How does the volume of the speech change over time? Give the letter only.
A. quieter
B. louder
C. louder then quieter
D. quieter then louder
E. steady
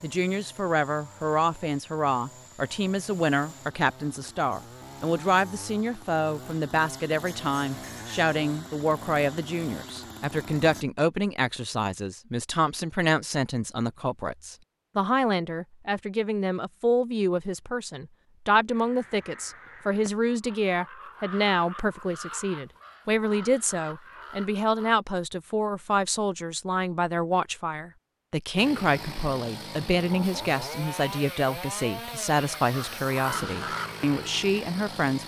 E.